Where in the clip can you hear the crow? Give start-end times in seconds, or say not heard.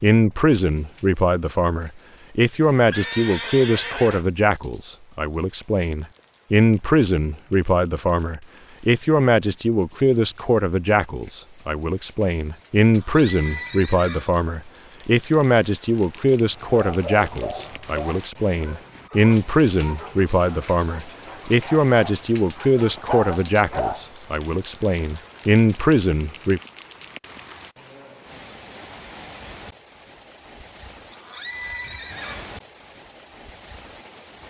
not heard.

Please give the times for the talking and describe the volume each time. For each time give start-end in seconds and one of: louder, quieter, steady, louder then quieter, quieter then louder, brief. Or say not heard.
0.0-26.6 steady.